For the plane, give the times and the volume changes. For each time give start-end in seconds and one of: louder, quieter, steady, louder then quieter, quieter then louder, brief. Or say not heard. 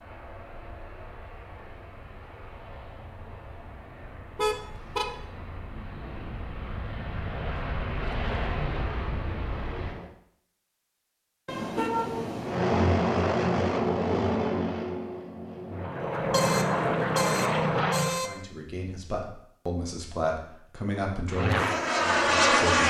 0.0-10.1 louder
12.3-18.2 quieter then louder
21.3-22.8 brief.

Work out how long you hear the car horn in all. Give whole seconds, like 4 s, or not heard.
4 s.